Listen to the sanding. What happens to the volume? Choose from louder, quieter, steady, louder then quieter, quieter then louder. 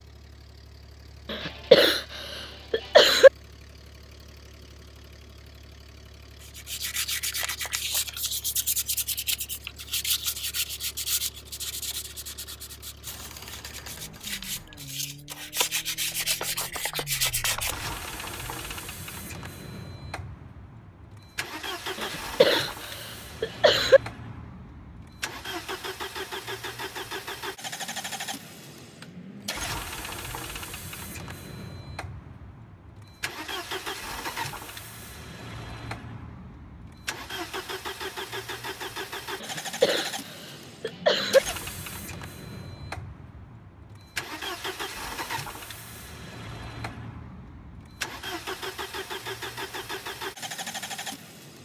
quieter then louder.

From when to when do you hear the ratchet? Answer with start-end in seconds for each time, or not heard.
13.1-14.9.